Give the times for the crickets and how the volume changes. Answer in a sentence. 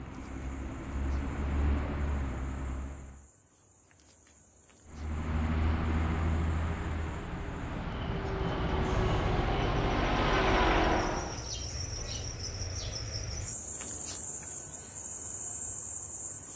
You can hear the crickets from 0.0 to 16.5 s, getting louder.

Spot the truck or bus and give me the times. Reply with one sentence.
You can hear the truck or bus from 0.0 to 3.3 s and from 4.8 to 11.5 s.